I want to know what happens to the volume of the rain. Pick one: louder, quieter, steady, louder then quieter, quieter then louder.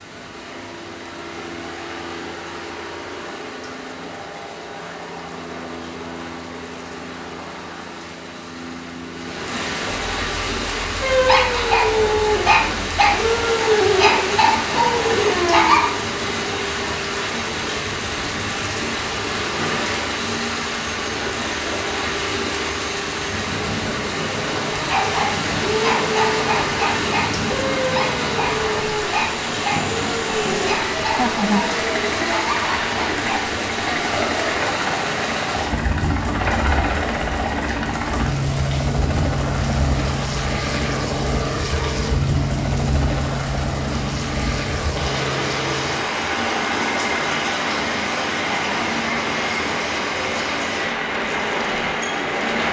louder.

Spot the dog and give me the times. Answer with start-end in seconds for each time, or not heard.
11.0-15.8, 24.7-33.4.